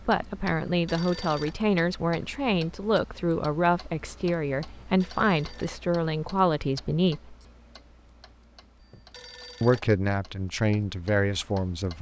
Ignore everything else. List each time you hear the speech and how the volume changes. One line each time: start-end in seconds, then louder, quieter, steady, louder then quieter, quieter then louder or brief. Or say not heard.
0.1-7.3 steady
9.6-11.9 brief.